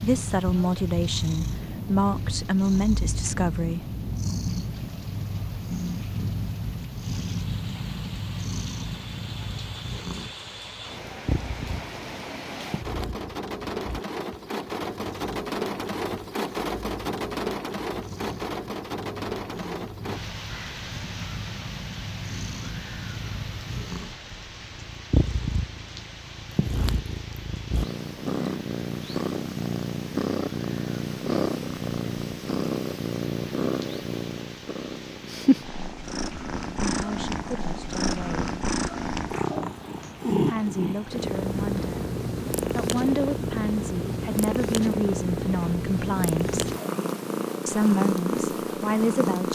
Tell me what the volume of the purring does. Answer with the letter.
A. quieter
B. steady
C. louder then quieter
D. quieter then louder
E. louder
D.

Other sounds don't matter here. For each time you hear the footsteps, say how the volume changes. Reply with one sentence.
You can't hear the footsteps here.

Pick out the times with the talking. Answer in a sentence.
The talking can be heard from 0.0 to 3.9 s, from 36.9 to 38.5 s, from 40.4 to 42.0 s, from 42.7 to 46.7 s and from 47.6 to 49.5 s.